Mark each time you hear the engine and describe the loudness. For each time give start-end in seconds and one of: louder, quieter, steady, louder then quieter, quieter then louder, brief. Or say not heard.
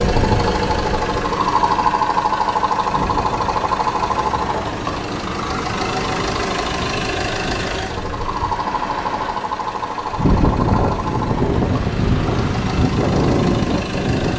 0.0-14.3 quieter.